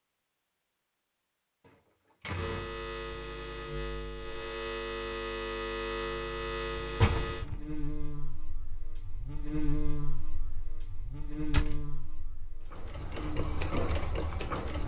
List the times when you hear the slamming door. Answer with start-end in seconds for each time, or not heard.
1.6-2.8, 7.0-7.7, 11.5-11.9.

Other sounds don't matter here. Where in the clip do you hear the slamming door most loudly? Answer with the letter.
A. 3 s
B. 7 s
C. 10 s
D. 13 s
B.